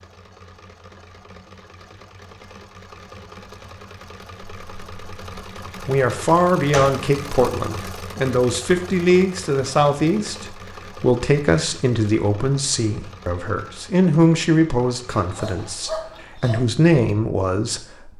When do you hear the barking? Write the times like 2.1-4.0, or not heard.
15.1-16.6.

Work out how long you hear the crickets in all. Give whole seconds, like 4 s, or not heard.
not heard.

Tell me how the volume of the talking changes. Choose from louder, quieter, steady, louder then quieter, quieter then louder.
steady.